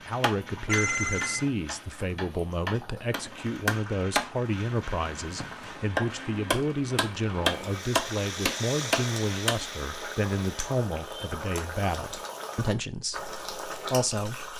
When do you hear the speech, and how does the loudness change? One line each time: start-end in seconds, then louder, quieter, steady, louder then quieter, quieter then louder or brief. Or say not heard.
0.1-14.5 steady.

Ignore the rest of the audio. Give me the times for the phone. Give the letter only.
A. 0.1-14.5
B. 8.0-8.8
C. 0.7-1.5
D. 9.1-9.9
C.